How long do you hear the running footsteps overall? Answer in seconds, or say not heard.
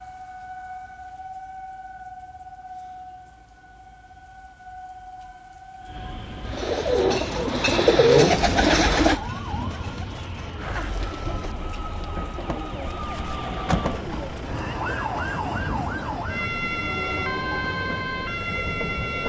not heard.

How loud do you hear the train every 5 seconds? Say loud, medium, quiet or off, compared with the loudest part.
quiet, medium, loud, loud.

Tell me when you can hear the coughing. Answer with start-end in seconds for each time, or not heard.
not heard.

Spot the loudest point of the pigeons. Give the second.
8 s.